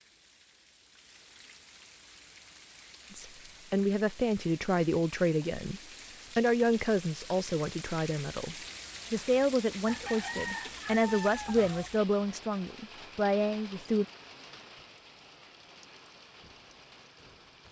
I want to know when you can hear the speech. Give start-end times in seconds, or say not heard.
3.1-14.1.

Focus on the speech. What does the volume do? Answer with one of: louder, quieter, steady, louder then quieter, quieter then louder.
steady.